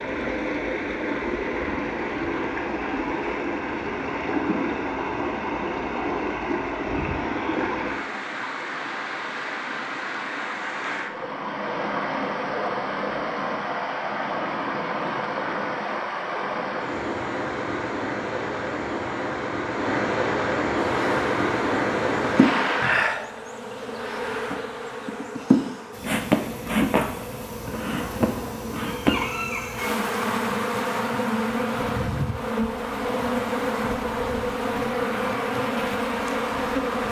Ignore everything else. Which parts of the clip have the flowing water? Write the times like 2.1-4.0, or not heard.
0.0-23.1.